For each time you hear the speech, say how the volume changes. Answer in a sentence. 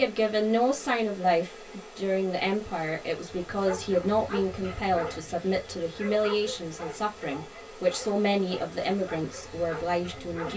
The speech can be heard from 0.0 to 10.5 s, at a steady volume.